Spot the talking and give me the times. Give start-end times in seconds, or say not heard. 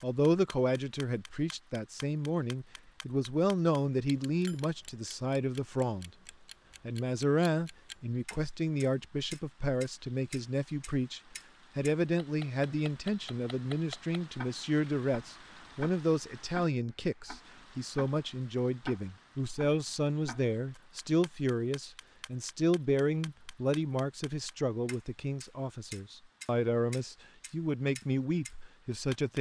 0.0-6.1, 6.8-29.3.